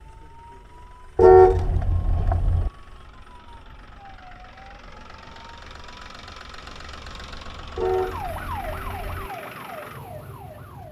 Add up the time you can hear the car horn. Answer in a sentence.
The car horn can be heard for 3 seconds in total.